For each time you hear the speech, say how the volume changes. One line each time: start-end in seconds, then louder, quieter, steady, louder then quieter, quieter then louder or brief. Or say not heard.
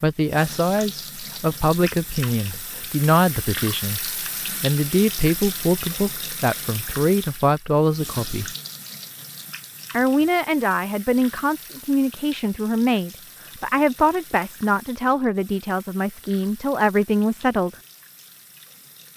0.0-8.6 steady
9.9-17.8 steady.